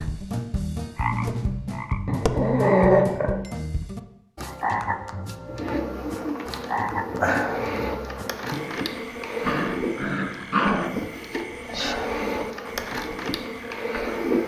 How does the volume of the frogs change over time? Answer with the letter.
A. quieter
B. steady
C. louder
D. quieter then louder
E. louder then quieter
A.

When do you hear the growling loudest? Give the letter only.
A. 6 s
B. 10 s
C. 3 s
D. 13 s
C.